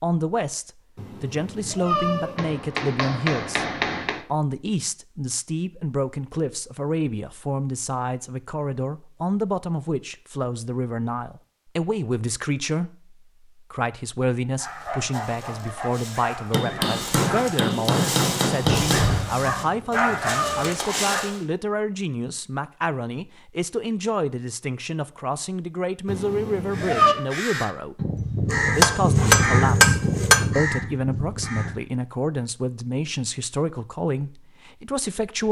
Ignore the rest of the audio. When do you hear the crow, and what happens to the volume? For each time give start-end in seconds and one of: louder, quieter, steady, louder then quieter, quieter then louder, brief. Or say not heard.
26.7-31.9 louder then quieter.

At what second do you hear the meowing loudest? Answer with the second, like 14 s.
27 s.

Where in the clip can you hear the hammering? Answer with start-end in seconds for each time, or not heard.
2.4-4.2, 16.5-19.3, 28.5-30.4.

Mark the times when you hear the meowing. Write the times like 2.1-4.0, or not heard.
0.9-2.4, 19.4-20.8, 26.1-27.1.